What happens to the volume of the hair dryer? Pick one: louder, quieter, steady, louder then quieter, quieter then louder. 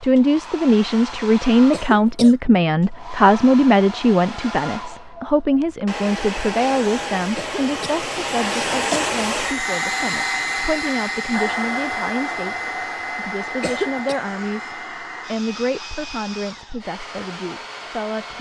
louder then quieter.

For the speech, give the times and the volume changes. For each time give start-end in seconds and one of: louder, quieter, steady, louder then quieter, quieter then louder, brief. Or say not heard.
0.0-18.3 quieter.